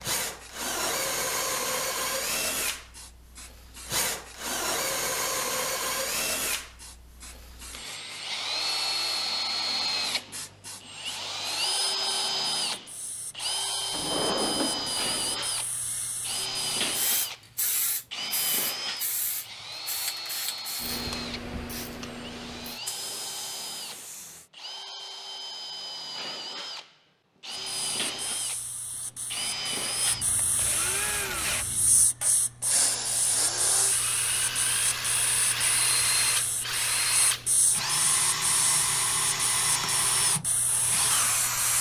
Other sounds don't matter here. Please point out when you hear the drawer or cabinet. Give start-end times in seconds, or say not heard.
13.9-15.4.